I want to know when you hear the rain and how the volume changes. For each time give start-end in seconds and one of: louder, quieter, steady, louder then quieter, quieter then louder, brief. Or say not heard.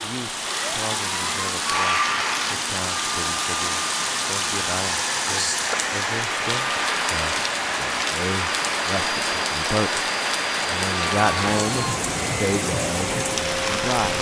0.0-14.1 steady.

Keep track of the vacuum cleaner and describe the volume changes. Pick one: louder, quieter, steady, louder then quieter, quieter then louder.
steady.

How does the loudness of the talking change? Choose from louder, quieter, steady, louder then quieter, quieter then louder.
louder.